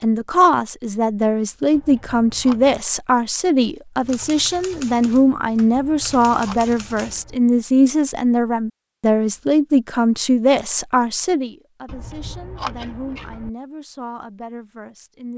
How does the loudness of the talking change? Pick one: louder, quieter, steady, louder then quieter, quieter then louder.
quieter.